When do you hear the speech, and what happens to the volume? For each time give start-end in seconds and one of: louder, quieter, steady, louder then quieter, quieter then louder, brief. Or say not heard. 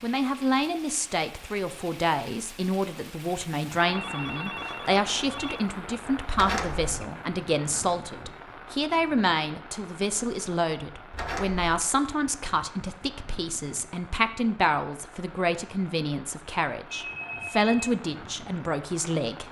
0.0-19.4 steady.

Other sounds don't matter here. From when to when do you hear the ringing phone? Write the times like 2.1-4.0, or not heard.
3.9-5.7, 17.0-17.9.